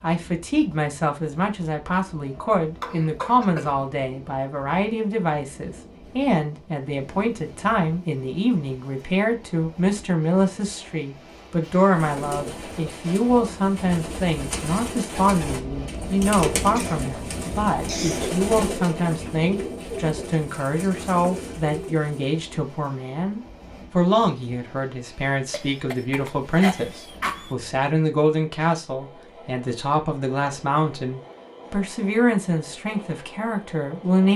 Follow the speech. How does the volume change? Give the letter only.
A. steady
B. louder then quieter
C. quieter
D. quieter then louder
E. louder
A.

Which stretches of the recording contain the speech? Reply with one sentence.
You can hear the speech from 0.0 to 34.3 s.